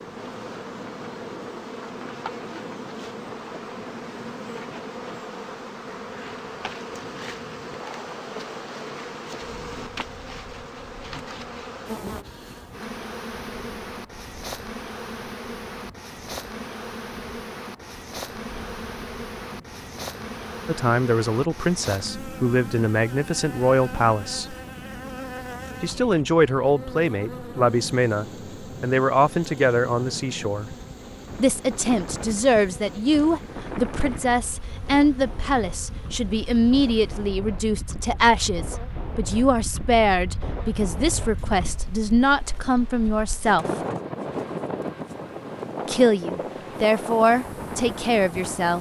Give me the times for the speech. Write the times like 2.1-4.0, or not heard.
20.6-24.6, 25.8-30.8, 31.4-43.6, 45.9-48.7.